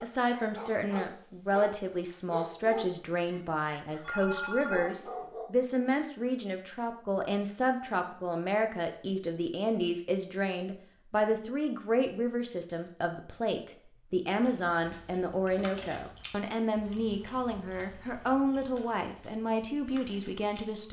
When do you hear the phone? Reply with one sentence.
You can hear the phone from 4.0 to 5.2 s.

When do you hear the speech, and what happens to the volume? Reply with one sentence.
The speech can be heard from 0.0 to 20.8 s, at a steady volume.